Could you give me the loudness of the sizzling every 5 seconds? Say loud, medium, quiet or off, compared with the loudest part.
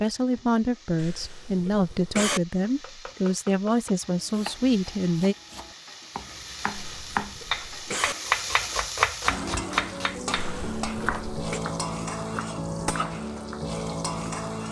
quiet, medium, loud.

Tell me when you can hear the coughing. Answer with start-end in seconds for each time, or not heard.
0.9-2.4, 6.8-8.2, 10.3-11.6.